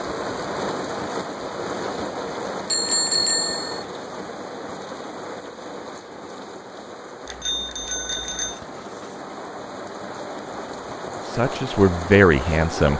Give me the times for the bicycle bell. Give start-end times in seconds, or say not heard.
2.7-3.9, 7.2-8.6.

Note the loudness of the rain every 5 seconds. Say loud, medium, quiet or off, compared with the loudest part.
loud, medium, loud.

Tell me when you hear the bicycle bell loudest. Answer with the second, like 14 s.
3 s.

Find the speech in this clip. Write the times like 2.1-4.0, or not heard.
11.2-12.9.